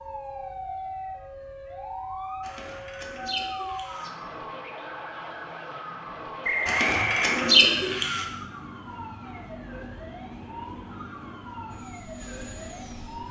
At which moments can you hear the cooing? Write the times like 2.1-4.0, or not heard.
2.4-4.1, 6.7-8.2.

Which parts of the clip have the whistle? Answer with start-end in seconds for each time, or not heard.
6.4-7.4.